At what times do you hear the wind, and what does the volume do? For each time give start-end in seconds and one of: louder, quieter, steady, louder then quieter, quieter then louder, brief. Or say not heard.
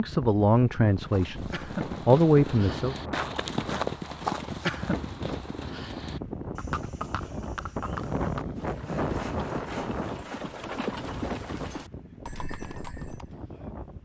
0.0-14.0 louder then quieter.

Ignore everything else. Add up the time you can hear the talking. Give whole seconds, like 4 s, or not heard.
3 s.